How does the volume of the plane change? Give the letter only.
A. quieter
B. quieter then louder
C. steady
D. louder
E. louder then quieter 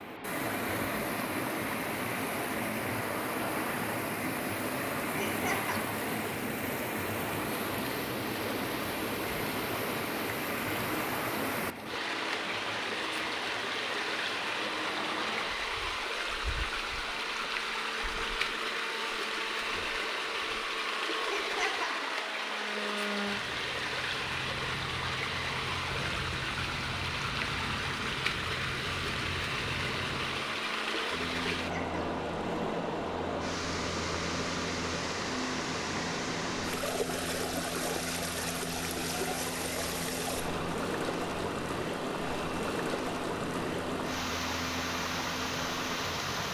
C.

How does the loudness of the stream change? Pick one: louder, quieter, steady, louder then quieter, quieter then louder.
steady.